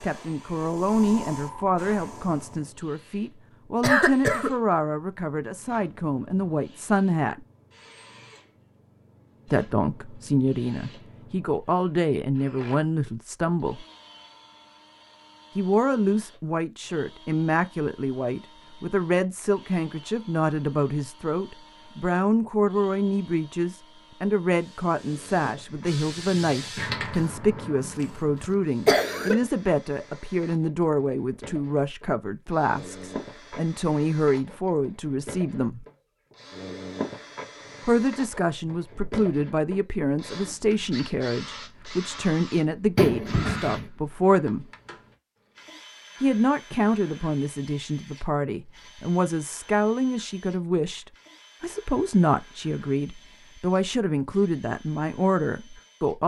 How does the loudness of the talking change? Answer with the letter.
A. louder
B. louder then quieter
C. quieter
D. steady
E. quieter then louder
D.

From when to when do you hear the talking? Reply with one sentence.
The talking can be heard from 0.0 to 7.4 s, from 9.5 to 13.8 s, from 15.6 to 35.9 s, from 37.9 to 44.6 s and from 46.2 to 56.2 s.